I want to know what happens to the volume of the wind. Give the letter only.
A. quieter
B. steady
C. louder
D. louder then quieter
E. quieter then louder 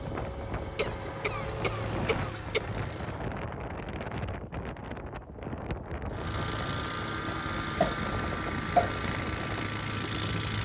B.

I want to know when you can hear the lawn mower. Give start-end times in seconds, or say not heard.
0.0-3.4, 6.1-10.5.